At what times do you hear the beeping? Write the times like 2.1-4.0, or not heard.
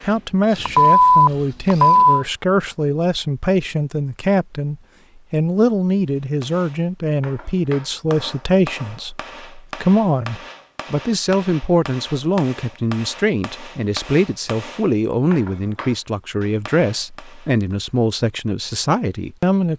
0.6-2.2.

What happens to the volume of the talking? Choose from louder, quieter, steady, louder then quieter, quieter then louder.
steady.